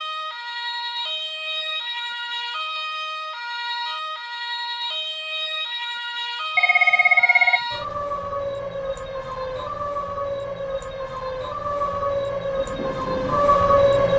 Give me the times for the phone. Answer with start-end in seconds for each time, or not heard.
6.5-7.6.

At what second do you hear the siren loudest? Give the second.
14 s.